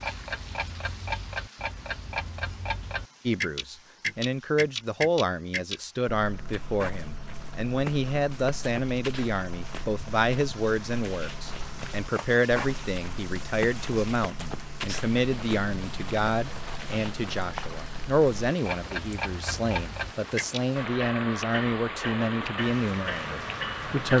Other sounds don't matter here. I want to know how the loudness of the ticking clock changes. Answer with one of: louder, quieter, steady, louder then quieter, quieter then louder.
quieter then louder.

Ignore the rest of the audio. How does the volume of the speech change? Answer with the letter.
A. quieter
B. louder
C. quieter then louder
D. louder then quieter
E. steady
E.